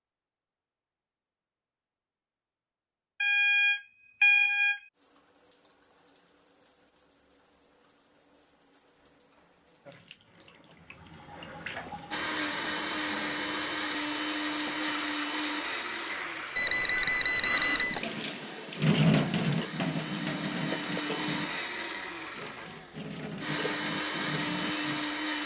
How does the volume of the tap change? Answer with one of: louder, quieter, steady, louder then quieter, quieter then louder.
louder then quieter.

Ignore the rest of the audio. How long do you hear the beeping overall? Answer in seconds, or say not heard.
3 s.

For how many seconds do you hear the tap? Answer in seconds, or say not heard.
20 s.